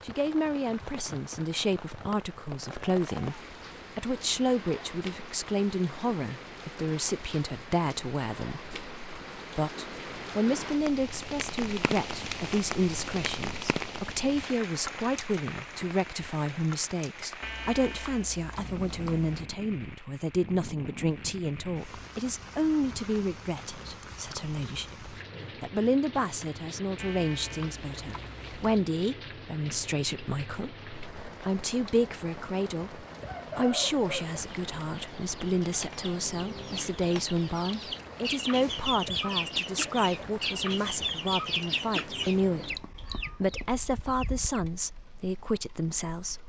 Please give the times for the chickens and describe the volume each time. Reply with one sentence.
You can hear the chickens from 33.0 to 44.6 s, getting louder then quieter.